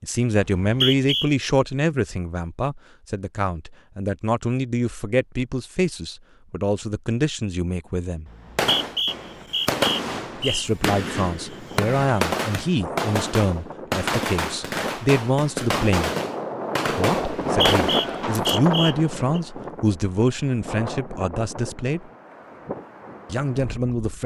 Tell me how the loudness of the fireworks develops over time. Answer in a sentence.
The volume of the fireworks stays about the same.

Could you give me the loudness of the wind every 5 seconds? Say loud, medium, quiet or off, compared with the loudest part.
off, off, medium, loud, medium.